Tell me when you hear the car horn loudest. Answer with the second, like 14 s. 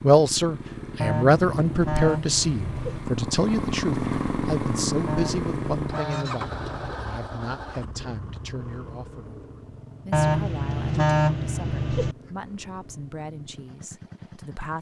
11 s.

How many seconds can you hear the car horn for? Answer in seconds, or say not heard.
6 s.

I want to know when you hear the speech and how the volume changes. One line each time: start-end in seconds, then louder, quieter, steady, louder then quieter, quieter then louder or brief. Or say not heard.
0.0-14.7 quieter.